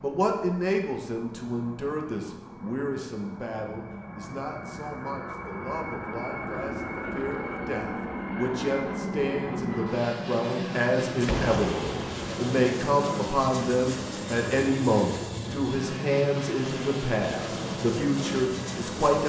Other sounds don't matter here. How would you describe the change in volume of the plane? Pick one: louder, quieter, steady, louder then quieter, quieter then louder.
louder.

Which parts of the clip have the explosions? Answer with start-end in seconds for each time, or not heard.
11.2-12.3.